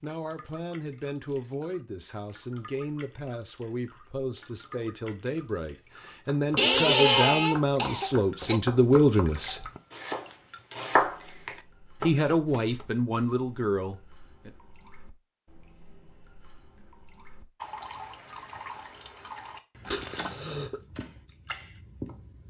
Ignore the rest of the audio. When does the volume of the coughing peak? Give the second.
7 s.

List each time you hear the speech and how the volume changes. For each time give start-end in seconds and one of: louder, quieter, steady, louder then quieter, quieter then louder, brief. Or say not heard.
0.0-9.7 louder
12.0-14.6 brief.